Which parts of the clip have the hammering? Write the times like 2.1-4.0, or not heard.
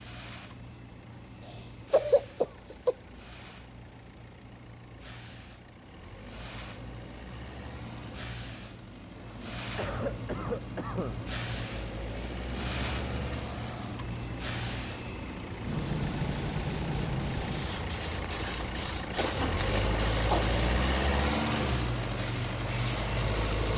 not heard.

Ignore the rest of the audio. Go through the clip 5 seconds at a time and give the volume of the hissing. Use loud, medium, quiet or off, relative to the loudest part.
quiet, medium, loud, loud, loud.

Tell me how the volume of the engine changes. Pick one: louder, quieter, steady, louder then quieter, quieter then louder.
louder.